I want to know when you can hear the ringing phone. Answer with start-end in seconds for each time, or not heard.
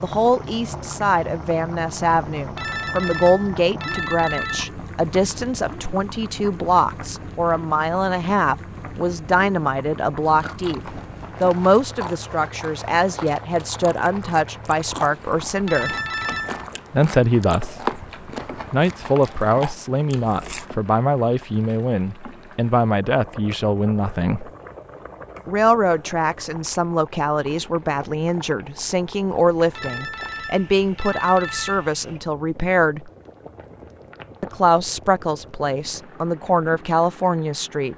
2.4-4.8, 15.4-16.7, 29.6-31.9.